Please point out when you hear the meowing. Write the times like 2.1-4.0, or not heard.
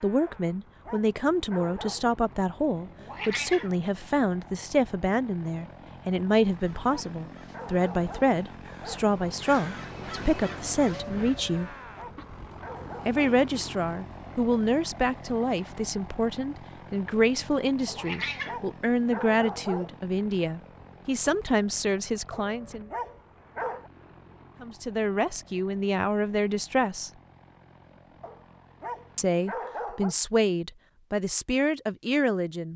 2.8-3.8, 17.8-18.6.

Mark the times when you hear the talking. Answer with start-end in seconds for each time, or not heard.
0.0-11.8, 13.1-22.9, 24.6-27.1, 29.1-32.7.